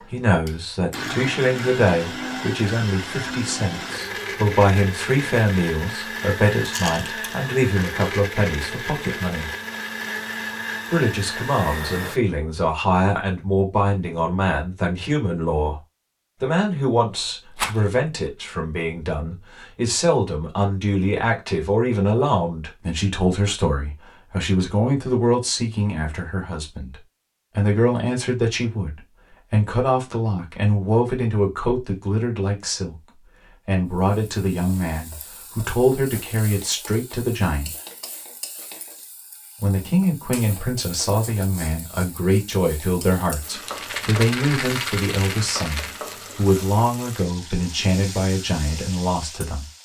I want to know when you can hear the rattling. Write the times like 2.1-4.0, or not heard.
6.6-7.3, 17.4-17.9, 43.6-46.0.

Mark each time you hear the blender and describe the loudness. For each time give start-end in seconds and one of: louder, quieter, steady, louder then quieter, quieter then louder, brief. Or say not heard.
0.0-12.2 steady.